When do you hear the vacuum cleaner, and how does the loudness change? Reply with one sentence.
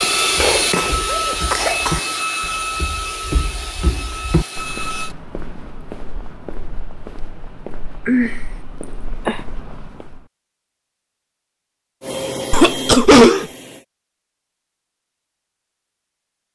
You can hear the vacuum cleaner from 0.0 to 5.2 s, getting quieter; and briefly from 12.0 to 13.8 s.